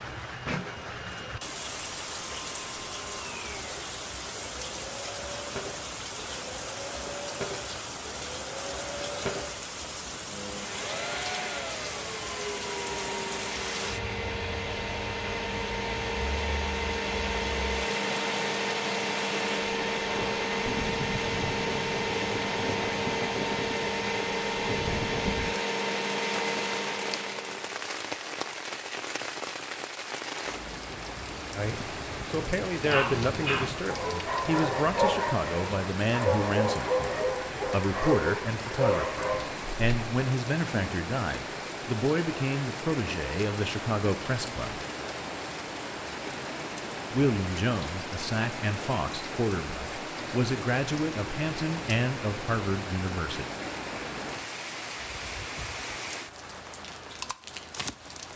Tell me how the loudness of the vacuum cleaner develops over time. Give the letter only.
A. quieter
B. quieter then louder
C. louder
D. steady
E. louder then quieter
C.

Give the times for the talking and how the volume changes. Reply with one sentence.
The talking can be heard from 31.5 to 44.8 s, at a steady volume; and from 47.1 to 53.5 s, at a steady volume.